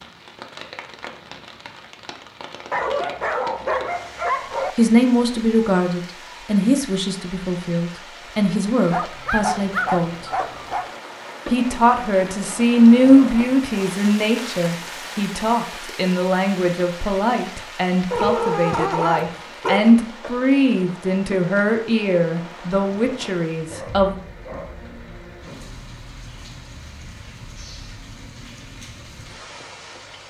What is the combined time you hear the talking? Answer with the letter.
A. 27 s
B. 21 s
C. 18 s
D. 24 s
C.